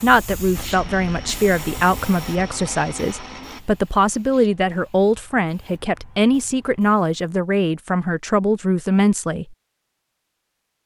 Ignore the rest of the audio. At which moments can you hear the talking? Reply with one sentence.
You can hear the talking from 0.0 to 9.6 s.